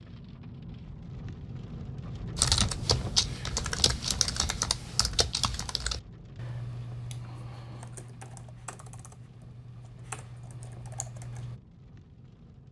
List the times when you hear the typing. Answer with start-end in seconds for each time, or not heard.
2.4-11.6.